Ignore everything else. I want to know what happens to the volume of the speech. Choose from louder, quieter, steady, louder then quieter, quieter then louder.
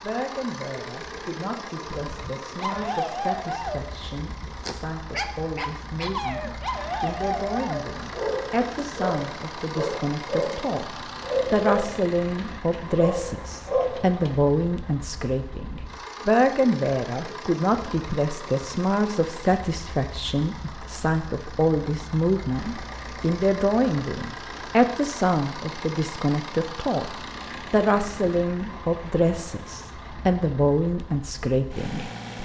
louder.